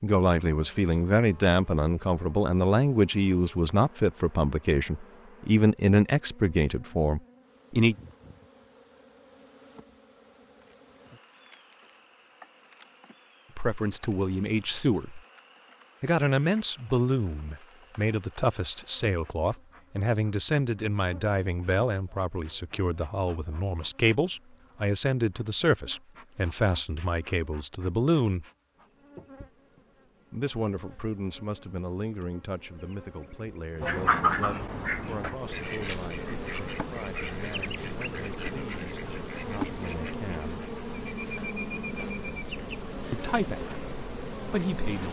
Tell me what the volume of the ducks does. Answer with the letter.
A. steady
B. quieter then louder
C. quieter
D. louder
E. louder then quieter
C.